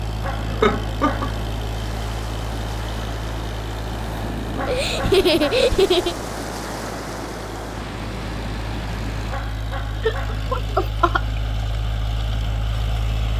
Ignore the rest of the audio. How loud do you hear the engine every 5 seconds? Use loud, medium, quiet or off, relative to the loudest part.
loud, medium, loud.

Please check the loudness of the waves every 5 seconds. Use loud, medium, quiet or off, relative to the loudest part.
loud, loud, off.